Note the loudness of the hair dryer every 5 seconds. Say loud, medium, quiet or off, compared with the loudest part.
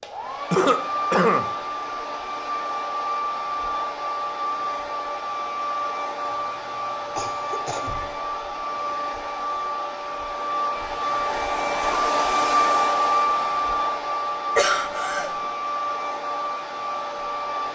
medium, medium, loud, medium.